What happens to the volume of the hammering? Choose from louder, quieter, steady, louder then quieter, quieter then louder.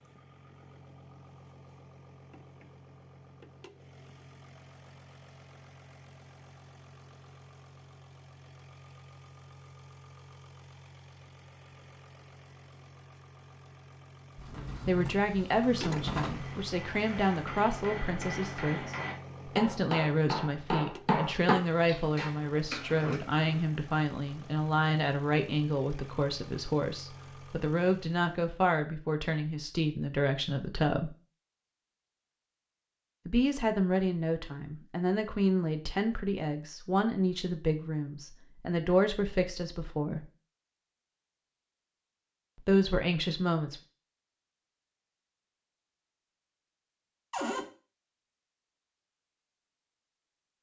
louder then quieter.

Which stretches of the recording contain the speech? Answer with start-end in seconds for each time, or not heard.
14.8-31.1, 33.2-40.2, 42.6-43.8.